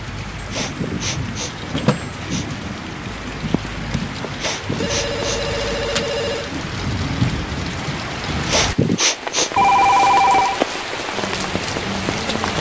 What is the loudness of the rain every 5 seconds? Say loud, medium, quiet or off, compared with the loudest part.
medium, loud, loud.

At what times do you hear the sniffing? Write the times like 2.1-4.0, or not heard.
0.5-2.5, 4.3-5.8, 8.4-9.7.